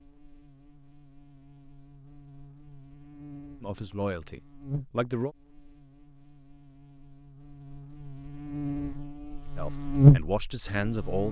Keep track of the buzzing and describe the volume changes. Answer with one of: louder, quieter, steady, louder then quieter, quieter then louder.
louder.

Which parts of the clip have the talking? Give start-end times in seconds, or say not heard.
3.6-5.3, 9.6-11.2.